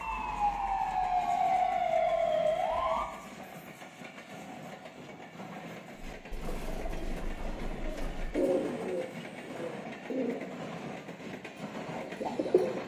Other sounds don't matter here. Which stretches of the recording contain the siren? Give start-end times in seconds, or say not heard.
0.0-3.0.